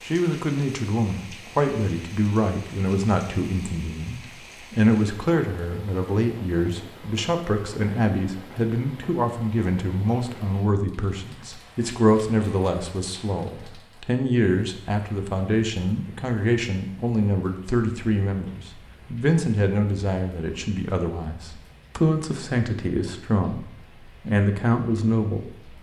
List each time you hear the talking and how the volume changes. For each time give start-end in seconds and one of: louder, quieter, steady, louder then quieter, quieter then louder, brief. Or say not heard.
0.1-23.6 steady
24.2-25.6 brief.